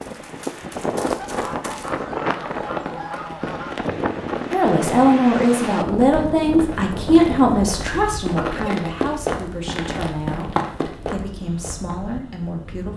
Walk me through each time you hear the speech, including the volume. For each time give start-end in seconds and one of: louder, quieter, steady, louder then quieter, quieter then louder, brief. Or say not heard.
4.5-12.9 quieter.